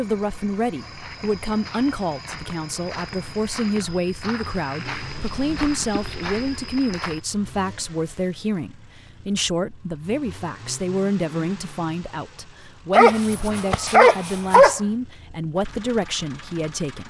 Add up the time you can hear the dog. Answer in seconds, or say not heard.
4 s.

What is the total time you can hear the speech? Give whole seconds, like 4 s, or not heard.
17 s.